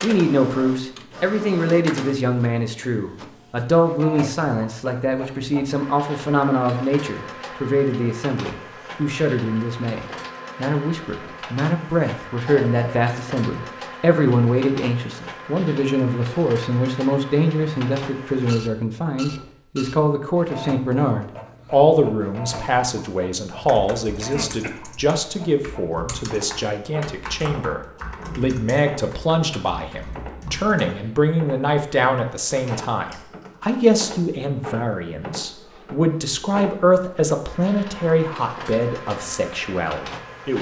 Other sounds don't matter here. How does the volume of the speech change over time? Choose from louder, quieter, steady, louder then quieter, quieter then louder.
steady.